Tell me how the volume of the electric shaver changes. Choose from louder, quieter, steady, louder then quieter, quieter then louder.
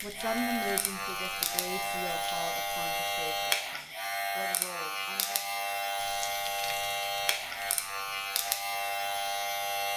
steady.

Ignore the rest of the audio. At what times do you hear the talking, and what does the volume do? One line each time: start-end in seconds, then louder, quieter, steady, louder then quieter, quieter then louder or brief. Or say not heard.
0.0-5.6 quieter then louder.